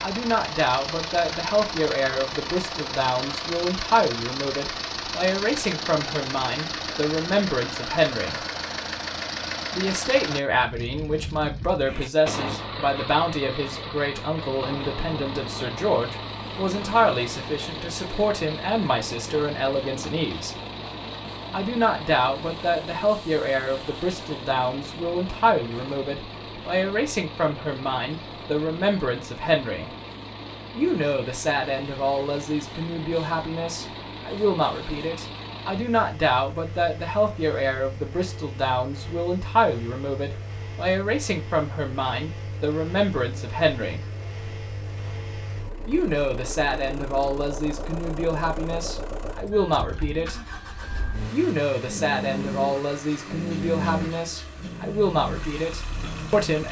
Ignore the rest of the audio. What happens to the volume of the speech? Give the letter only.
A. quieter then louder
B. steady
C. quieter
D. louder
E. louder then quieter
B.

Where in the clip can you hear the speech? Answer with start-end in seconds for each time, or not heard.
0.0-8.4, 9.7-20.6, 21.5-29.9, 30.8-44.0, 45.9-50.4, 51.3-56.6.